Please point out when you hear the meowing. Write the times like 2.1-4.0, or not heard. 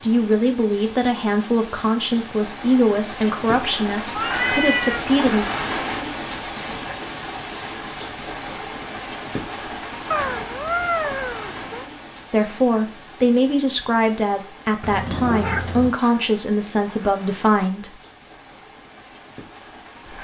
4.1-5.0, 10.1-11.8, 14.8-15.9.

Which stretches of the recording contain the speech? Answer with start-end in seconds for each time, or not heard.
0.0-5.5, 12.3-18.0.